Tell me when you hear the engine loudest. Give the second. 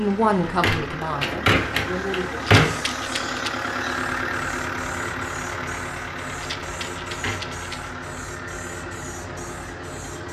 4 s.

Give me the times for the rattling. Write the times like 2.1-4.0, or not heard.
2.5-3.5, 6.4-7.9.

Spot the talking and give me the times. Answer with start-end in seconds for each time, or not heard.
0.0-2.4.